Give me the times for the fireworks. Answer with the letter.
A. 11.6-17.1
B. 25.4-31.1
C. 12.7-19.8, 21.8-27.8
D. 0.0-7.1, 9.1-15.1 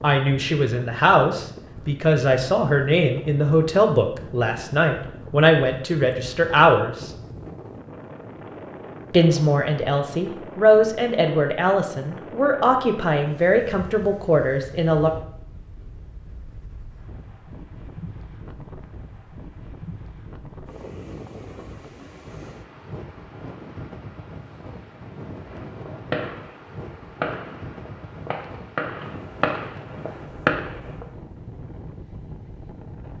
B.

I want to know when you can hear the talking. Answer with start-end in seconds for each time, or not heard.
0.0-7.1, 9.1-15.1.